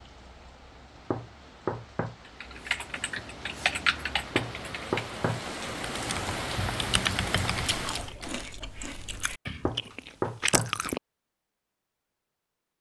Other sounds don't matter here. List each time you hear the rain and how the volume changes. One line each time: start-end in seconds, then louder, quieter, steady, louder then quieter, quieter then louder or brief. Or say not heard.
0.0-8.2 louder.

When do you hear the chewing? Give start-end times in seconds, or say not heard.
7.5-11.0.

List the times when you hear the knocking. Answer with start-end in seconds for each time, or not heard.
1.1-2.1, 4.3-5.4, 9.7-10.8.